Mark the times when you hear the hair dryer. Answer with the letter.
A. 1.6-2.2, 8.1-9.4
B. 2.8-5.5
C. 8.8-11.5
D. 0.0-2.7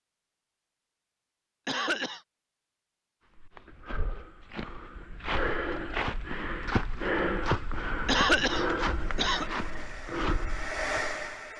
C.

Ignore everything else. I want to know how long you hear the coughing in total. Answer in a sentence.
The coughing can be heard for 2 seconds in total.